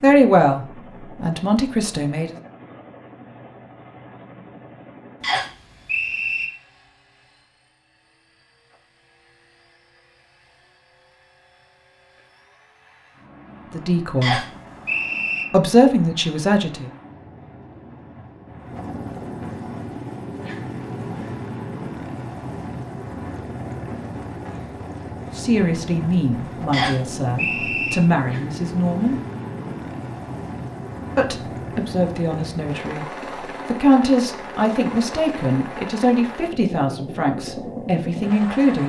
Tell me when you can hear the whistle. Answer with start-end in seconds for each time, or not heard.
5.2-6.5, 14.2-15.4, 26.7-27.9.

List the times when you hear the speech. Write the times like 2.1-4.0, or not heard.
0.0-2.4, 13.7-14.4, 15.5-16.9, 25.4-29.1, 31.1-33.0, 33.6-38.8.